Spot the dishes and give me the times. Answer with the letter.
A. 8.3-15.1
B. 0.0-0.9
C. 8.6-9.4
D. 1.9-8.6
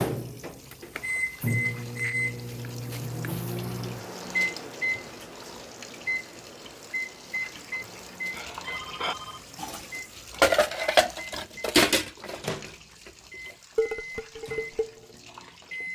A.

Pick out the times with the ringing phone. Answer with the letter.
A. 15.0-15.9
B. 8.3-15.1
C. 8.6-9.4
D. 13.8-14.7
C.